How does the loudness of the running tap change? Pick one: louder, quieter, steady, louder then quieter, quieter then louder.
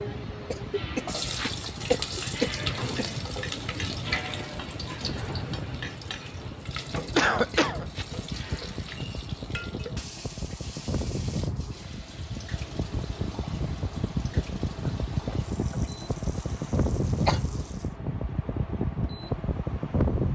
quieter.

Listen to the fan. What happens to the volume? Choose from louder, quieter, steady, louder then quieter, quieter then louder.
louder.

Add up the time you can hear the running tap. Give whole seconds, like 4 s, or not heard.
18 s.